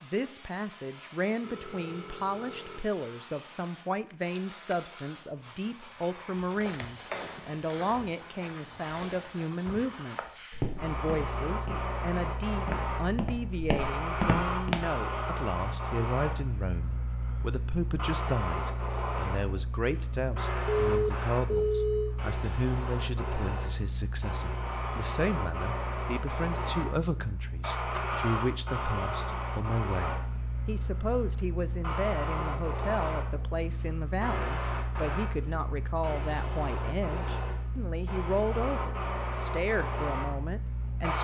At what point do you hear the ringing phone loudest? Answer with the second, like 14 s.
22 s.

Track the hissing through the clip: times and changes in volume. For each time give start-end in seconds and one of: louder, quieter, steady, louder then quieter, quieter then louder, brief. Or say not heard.
0.0-41.1 louder.